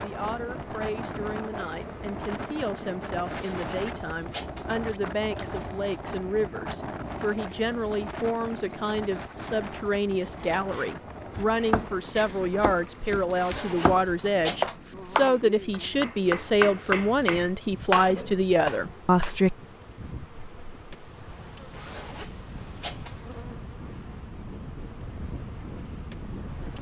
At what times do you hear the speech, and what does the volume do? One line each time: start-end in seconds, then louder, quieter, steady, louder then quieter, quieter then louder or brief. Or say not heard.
0.0-19.6 louder.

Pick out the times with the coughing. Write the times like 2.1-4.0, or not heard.
not heard.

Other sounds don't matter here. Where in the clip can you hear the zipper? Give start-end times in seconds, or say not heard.
3.2-4.8, 13.3-14.8, 21.7-23.5.